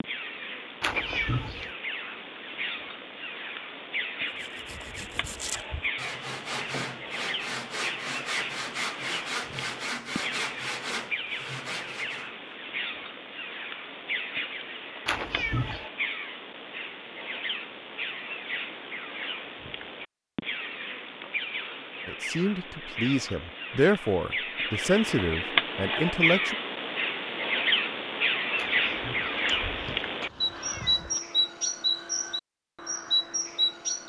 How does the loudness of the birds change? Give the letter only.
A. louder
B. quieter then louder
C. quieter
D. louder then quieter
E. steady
A.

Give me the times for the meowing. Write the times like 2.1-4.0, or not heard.
0.8-1.7, 15.1-15.8, 28.6-31.2.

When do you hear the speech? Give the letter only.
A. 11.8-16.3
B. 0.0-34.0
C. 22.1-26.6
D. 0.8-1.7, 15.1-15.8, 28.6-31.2
C.